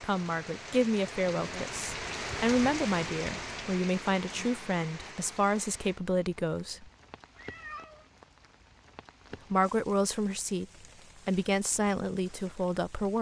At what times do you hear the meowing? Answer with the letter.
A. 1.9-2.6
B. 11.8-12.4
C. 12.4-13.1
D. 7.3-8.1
D.